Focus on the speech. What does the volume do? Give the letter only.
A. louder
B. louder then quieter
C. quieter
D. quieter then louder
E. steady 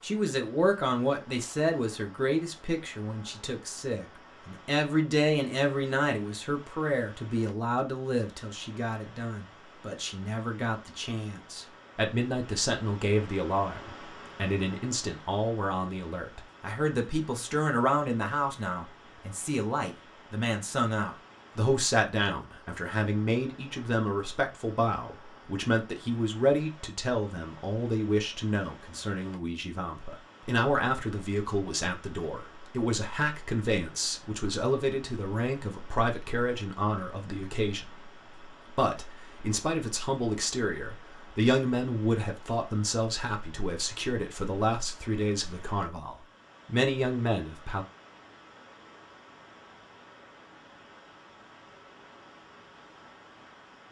E.